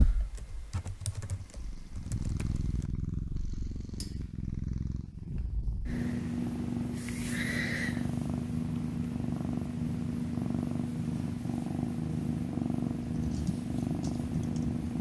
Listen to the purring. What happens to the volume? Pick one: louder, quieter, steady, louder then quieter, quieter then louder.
louder.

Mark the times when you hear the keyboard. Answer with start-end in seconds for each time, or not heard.
0.0-2.9, 13.2-14.8.